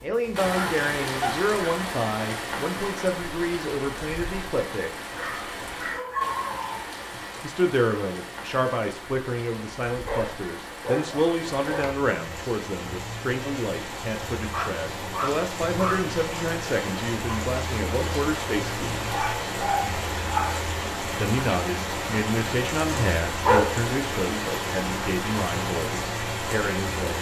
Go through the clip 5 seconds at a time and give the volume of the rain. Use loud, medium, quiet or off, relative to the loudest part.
loud, medium, medium, loud, loud, loud.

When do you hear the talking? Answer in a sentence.
You can hear the talking from 0.0 to 4.9 s, from 7.4 to 19.1 s and from 21.1 to 27.1 s.